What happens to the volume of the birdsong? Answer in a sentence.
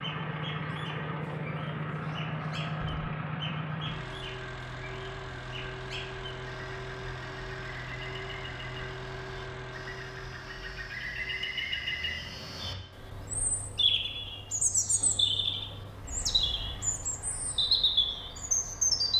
The loudness of the birdsong goes up.